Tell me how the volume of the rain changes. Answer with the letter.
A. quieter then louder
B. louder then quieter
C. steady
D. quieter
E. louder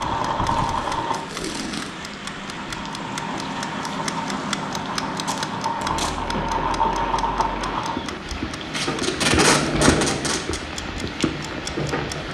E.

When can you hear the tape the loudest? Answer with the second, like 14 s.
9 s.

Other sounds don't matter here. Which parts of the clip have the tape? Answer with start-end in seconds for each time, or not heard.
0.5-2.0, 5.2-6.1, 8.7-10.6.